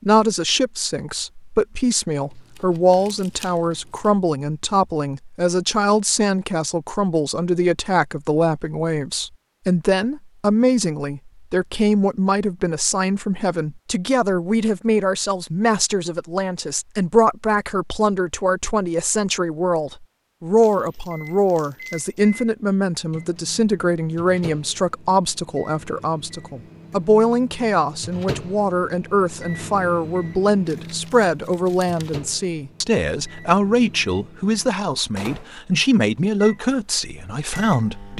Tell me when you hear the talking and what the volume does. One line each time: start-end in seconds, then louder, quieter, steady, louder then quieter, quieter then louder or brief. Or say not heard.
0.0-38.1 steady.